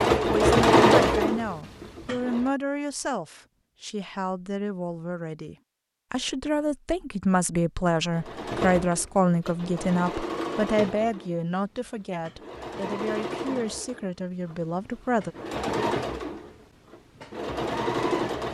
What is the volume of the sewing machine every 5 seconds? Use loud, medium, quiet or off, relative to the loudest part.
loud, quiet, quiet, medium.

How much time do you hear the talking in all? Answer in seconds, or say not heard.
15 s.